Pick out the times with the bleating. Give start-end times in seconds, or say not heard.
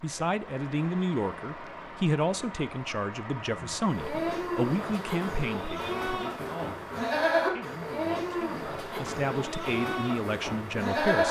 3.9-11.2.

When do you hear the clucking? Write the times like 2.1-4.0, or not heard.
not heard.